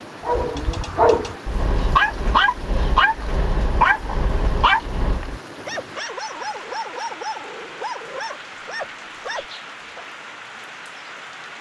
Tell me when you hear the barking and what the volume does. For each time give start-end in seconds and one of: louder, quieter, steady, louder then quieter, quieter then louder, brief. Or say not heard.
0.2-10.1 quieter.